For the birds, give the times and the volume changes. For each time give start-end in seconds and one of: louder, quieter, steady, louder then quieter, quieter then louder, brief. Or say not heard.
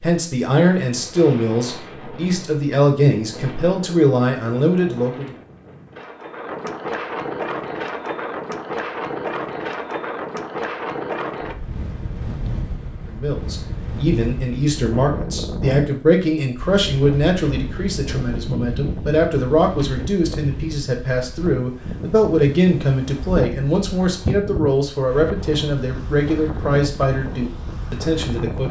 not heard.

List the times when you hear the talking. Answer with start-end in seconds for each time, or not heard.
0.0-5.3, 13.1-28.6.